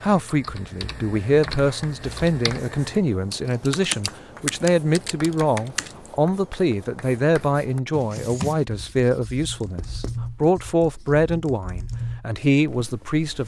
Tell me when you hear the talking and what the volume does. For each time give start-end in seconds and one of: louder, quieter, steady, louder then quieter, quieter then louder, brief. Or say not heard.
0.0-13.4 steady.